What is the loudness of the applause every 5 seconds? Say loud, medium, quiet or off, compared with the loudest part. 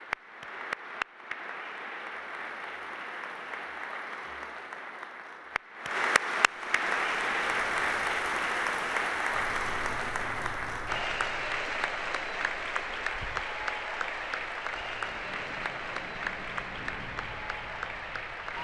medium, loud, loud, medium.